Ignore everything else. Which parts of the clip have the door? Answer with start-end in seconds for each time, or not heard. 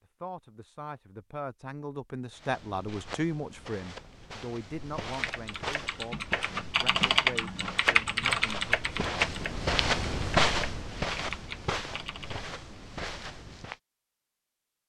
not heard.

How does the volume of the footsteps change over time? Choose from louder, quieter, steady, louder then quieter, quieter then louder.
louder then quieter.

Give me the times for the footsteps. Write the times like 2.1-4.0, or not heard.
2.3-13.8.